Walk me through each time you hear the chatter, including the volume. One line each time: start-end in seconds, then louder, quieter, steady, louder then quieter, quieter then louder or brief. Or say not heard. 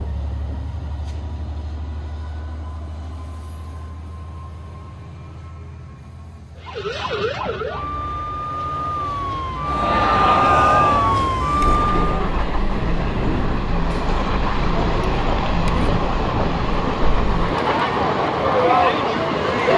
9.7-19.7 quieter then louder.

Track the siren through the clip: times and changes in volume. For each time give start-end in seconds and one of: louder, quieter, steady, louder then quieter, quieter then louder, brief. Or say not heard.
6.6-12.2 louder.